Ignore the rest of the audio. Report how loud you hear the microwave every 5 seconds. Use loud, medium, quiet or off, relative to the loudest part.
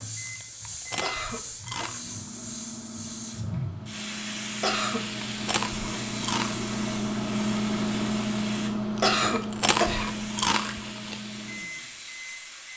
medium, loud, medium.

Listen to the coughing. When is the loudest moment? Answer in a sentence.
The loudest moment of the coughing is at 9 seconds.